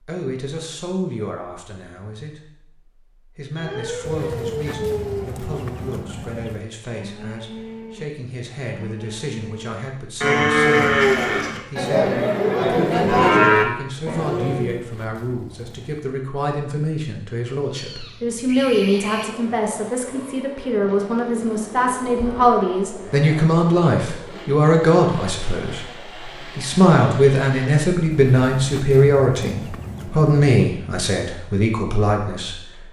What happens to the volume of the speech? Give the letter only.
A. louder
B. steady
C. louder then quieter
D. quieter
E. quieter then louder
A.